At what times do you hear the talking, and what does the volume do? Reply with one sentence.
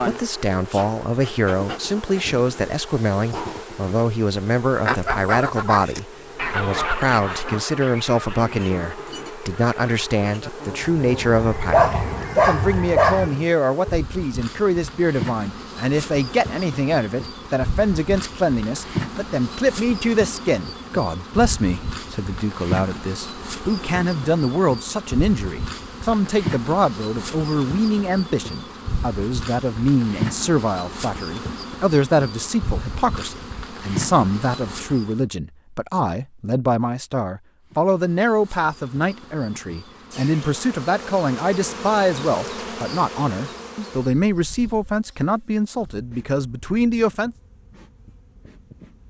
You can hear the talking from 0.1 to 47.4 s, at a steady volume.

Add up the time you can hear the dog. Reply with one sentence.
The dog can be heard for 2 seconds in total.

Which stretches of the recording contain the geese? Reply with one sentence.
You can hear the geese from 4.8 to 13.3 s.